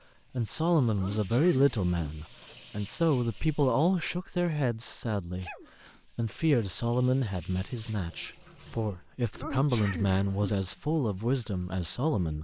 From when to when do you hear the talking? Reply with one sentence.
You can hear the talking from 0.3 to 5.5 s and from 6.2 to 12.3 s.